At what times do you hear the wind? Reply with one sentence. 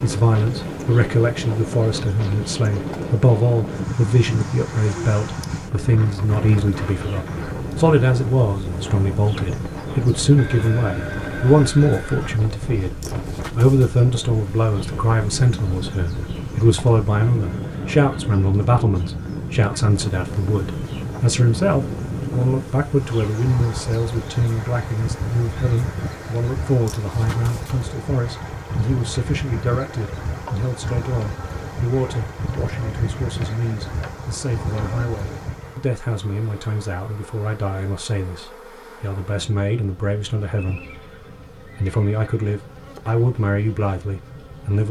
You can hear the wind from 0.0 to 35.9 s.